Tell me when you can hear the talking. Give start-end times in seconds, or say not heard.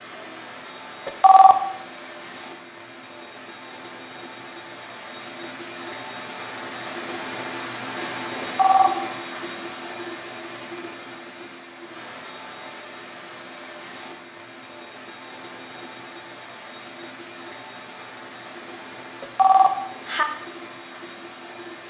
not heard.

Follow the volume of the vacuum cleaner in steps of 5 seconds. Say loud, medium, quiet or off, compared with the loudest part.
medium, loud, medium, medium, medium.